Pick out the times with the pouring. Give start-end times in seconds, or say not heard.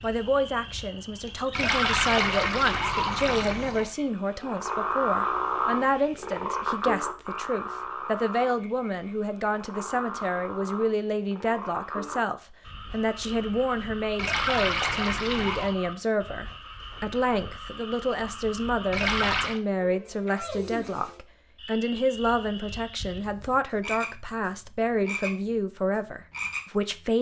1.5-3.9, 14.2-15.8, 18.9-19.6.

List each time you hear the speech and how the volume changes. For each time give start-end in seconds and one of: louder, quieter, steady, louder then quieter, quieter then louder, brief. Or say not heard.
0.0-27.1 steady.